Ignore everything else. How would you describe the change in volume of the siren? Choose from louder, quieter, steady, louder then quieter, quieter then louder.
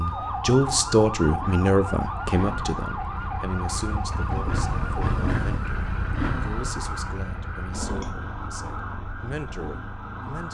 quieter.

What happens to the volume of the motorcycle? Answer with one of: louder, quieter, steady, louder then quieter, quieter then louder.
louder then quieter.